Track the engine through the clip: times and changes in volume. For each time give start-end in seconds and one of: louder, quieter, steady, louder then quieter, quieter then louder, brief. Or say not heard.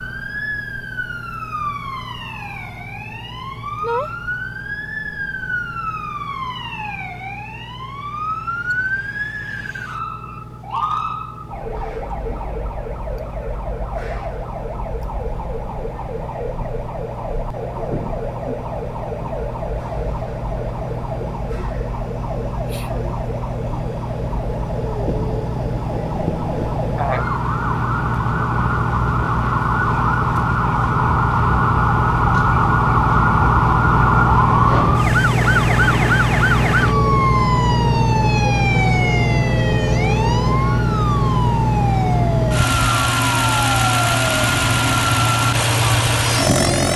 0.0-46.9 louder.